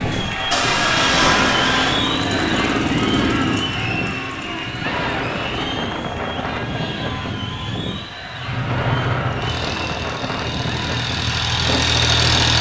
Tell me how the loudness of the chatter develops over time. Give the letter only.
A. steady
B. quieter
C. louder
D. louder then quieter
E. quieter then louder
B.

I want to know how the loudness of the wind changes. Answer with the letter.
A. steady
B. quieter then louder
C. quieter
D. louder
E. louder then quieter
A.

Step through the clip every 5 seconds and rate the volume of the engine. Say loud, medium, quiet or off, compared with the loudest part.
loud, medium, loud.